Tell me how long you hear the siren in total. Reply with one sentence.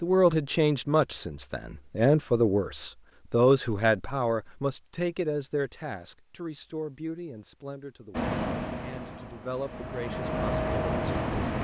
The siren can't be heard in this clip.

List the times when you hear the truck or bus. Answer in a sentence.
You can hear the truck or bus from 8.1 to 11.6 s.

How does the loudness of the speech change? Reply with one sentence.
The loudness of the speech goes down.